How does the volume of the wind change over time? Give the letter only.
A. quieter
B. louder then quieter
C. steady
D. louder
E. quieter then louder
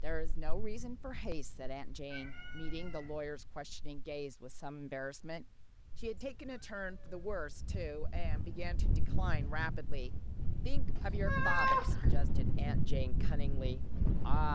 E.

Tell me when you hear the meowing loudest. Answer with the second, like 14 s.
12 s.